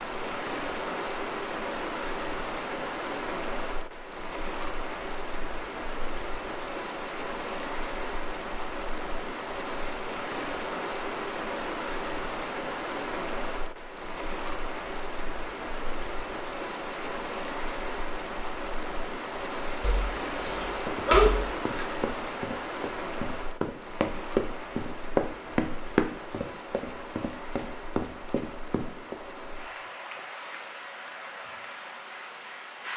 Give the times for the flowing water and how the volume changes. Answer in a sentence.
You can hear the flowing water from 0.0 to 32.9 s, getting quieter.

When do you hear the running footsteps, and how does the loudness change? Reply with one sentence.
You can hear the running footsteps from 20.4 to 29.1 s, getting louder then quieter.